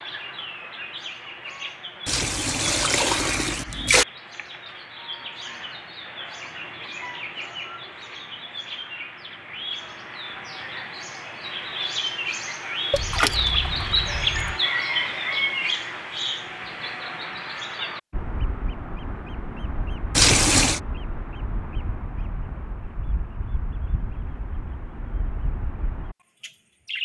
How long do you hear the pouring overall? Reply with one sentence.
You can hear the pouring for 4 seconds altogether.